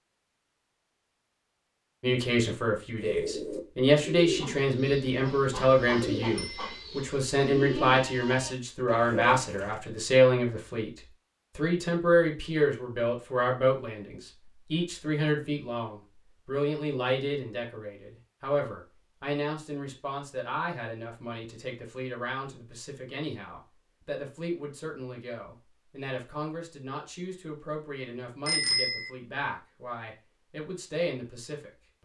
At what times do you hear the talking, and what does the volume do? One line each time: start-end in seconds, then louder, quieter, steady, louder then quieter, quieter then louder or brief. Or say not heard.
2.0-31.9 quieter.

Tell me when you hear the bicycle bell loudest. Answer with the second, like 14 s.
29 s.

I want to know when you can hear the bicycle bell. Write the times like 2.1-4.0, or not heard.
6.3-6.8, 28.4-29.1.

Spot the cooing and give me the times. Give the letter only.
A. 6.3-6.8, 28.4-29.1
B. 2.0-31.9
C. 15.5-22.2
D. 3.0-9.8
D.